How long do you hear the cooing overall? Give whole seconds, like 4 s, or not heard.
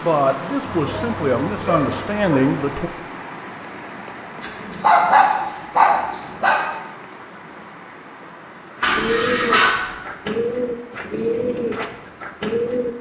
4 s.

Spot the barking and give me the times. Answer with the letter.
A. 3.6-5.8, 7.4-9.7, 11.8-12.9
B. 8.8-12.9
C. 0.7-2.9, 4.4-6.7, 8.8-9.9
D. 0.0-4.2
C.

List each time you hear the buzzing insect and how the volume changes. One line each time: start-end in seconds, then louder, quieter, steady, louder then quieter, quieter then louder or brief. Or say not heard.
not heard.